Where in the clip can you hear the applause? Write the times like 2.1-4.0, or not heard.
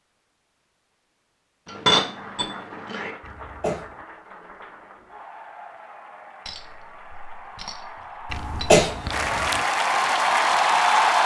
1.9-11.2.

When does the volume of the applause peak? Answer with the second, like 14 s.
11 s.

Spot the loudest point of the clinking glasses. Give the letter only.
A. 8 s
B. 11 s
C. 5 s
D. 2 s
D.